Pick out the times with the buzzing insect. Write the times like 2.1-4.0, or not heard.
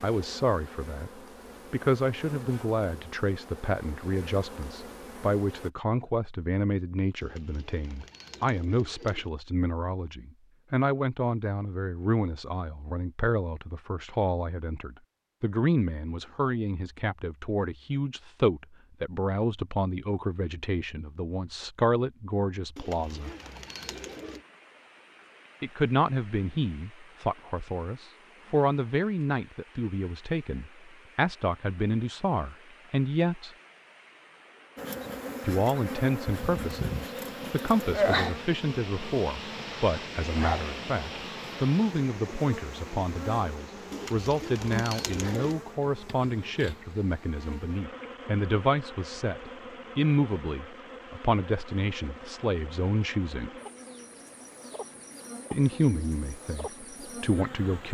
0.0-5.7, 34.8-57.8.